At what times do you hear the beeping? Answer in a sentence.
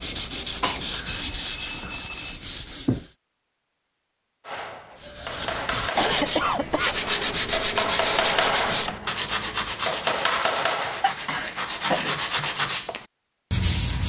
You can hear the beeping from 1.1 to 2.4 s.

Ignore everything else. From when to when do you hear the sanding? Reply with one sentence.
The sanding can be heard from 0.0 to 3.1 s and from 5.0 to 14.0 s.